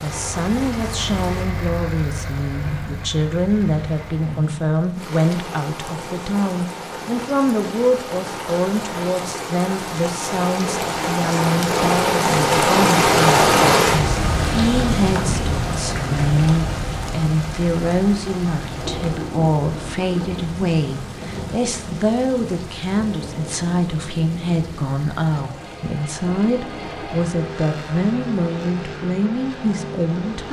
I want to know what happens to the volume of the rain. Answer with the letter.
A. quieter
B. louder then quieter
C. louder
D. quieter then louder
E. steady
B.